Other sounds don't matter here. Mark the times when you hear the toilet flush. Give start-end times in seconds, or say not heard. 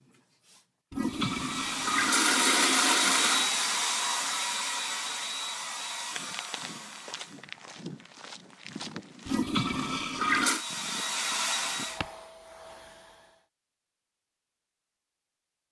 0.9-3.5, 9.2-10.7.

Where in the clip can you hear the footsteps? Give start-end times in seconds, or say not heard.
6.1-12.1.